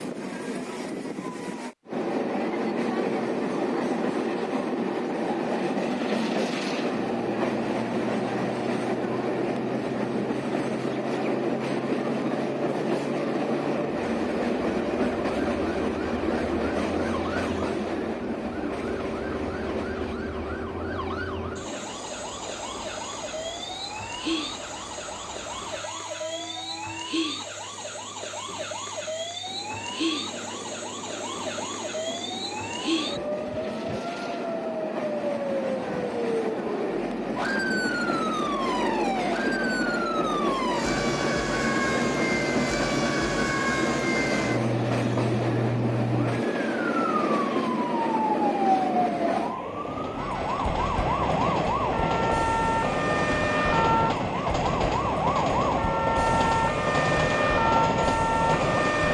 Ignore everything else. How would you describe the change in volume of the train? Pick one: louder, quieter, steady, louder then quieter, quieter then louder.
quieter then louder.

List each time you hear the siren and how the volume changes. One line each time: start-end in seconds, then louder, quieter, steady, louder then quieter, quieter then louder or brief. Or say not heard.
6.9-59.0 louder.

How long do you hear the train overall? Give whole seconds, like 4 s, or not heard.
59 s.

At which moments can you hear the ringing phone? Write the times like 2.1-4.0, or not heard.
not heard.